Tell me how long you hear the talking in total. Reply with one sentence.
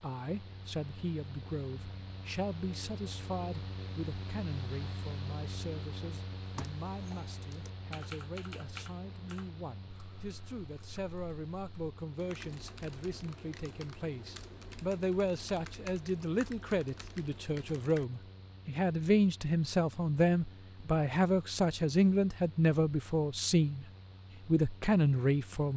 You can hear the talking for 25 seconds altogether.